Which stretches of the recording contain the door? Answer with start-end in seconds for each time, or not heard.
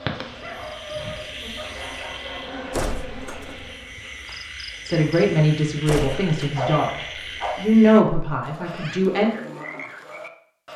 2.7-3.8, 5.8-6.5.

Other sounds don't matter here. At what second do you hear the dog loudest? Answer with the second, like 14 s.
7 s.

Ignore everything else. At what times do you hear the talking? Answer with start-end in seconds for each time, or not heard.
4.8-6.9, 7.5-9.3.